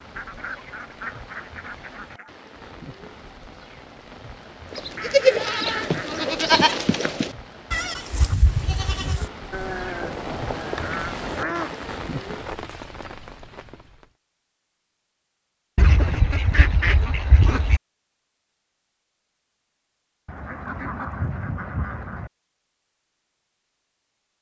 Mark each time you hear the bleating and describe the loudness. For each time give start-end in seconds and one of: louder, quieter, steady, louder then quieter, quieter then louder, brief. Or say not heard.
4.7-11.2 quieter.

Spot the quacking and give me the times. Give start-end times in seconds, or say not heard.
0.1-2.3, 5.0-6.5, 10.0-11.8, 15.8-17.8, 20.2-22.3.